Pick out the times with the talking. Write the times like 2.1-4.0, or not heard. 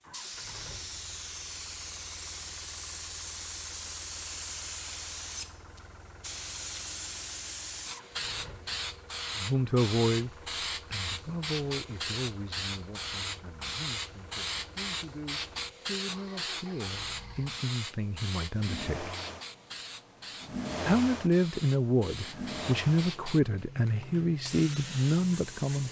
9.3-10.3, 10.9-19.1, 20.9-25.8.